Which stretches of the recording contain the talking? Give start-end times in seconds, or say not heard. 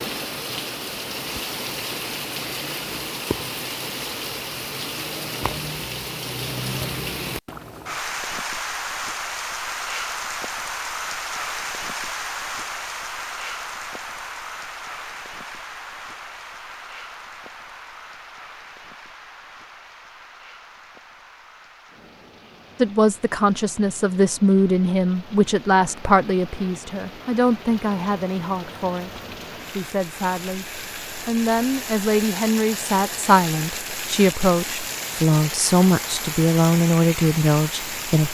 22.8-38.2.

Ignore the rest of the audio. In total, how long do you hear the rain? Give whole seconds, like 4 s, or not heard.
38 s.